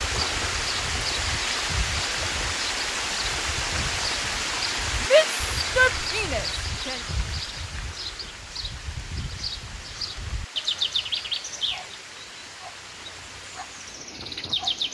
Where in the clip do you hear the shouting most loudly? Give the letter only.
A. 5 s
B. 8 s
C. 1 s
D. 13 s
A.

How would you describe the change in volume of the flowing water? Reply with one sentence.
The volume of the flowing water goes down.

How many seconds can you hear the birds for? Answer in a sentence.
The birds can be heard for 15 seconds in total.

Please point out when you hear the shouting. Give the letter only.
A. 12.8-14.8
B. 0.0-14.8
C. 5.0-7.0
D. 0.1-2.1
C.